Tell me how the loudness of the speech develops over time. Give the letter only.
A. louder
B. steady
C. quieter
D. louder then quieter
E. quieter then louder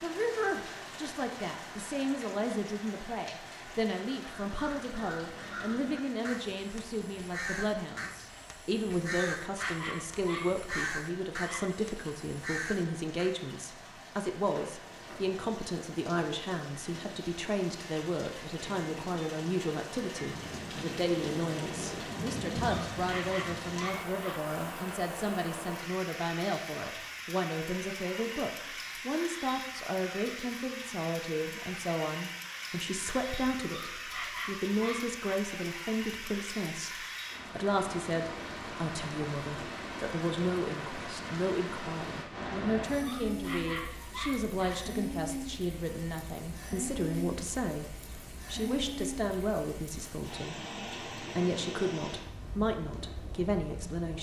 B.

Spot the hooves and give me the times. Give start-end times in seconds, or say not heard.
not heard.